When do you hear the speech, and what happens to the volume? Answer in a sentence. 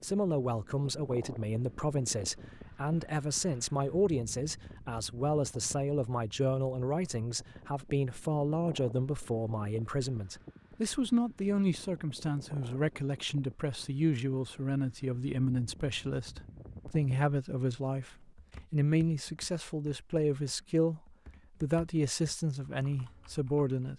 You can hear the speech from 0.0 to 21.0 s, at a steady volume; and briefly from 21.6 to 23.9 s.